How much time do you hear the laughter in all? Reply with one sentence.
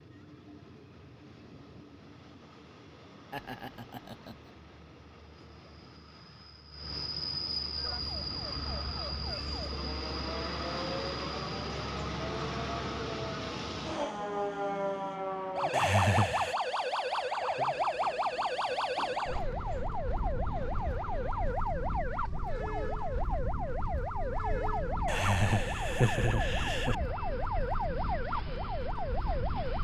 The laughter can be heard for 4 seconds in total.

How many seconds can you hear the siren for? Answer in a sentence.
The siren can be heard for 22 seconds in total.